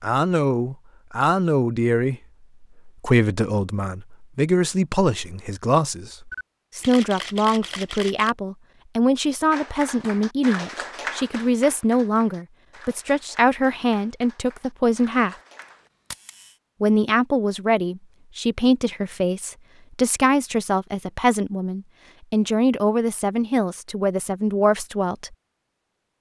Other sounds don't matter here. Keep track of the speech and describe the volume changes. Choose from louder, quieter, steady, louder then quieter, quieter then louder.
steady.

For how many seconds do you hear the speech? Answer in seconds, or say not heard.
24 s.